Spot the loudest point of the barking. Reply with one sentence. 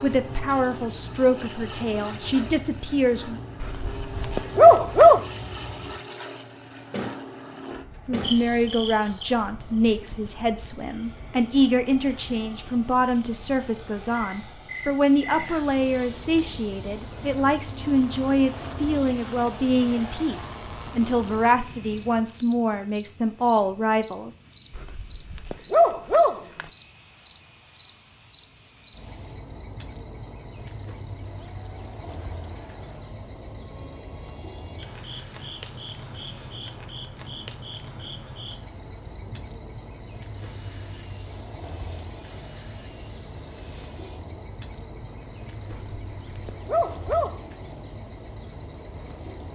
The loudest moment of the barking is at 5 seconds.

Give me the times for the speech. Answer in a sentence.
You can hear the speech from 0.0 to 3.4 s and from 8.1 to 24.3 s.